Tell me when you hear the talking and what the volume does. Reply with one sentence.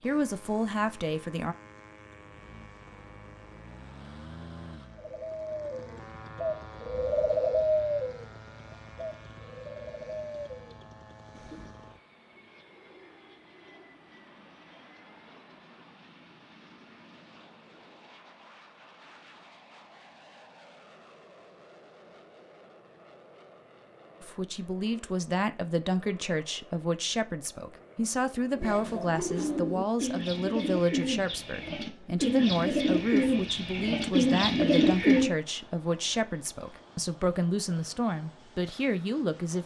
The talking can be heard briefly from 0.0 to 1.6 s; and from 24.2 to 39.6 s, at a steady volume.